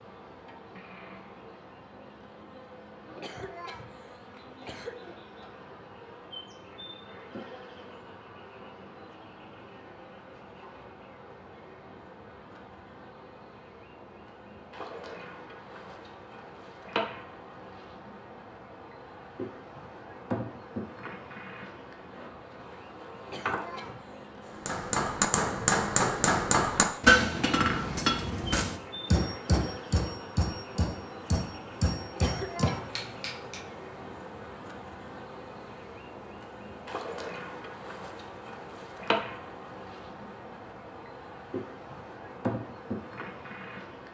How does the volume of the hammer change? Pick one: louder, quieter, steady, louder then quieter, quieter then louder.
quieter.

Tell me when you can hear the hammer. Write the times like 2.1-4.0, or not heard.
24.6-33.6.